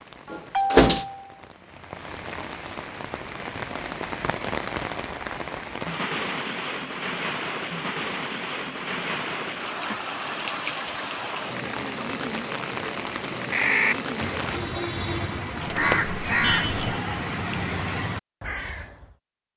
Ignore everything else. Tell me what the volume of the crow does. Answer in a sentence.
The volume of the crow goes up, then down.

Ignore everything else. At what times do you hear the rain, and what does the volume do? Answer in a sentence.
The rain can be heard from 0.0 to 14.7 s, at a steady volume.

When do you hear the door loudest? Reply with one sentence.
The volume of the door peaks at 1 second.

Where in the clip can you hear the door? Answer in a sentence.
The door can be heard from 0.3 to 1.1 s and from 15.7 to 17.0 s.